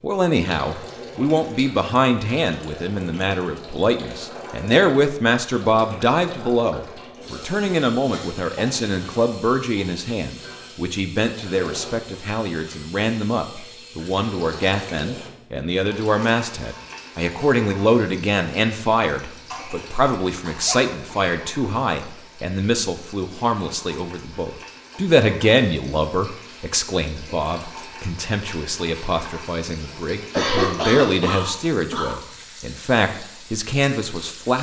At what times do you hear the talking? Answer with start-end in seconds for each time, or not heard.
0.0-34.5.